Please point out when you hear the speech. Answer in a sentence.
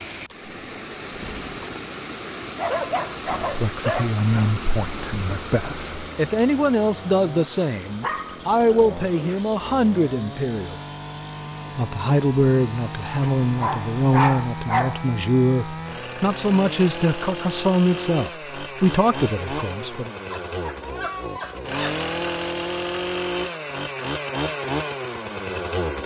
The speech can be heard from 3.5 to 10.8 s and from 11.8 to 20.1 s.